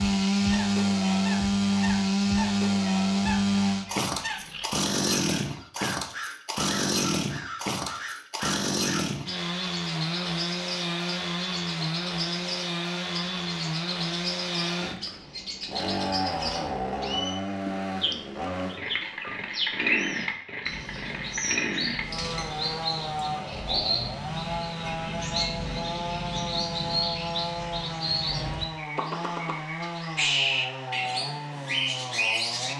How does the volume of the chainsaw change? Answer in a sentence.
The volume of the chainsaw goes down.